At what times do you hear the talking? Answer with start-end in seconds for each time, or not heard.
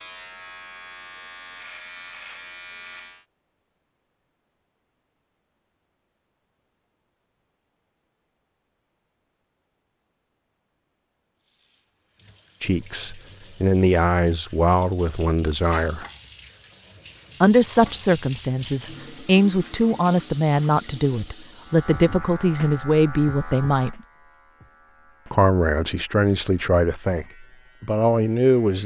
12.6-16.1, 17.4-24.0, 25.3-28.8.